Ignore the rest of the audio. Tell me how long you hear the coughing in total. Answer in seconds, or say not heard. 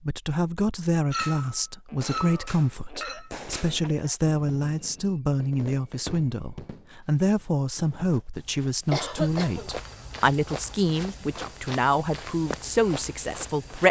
3 s.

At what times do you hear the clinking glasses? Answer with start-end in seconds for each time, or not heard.
1.1-3.3.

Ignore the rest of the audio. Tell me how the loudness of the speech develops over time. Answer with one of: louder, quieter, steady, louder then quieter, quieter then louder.
steady.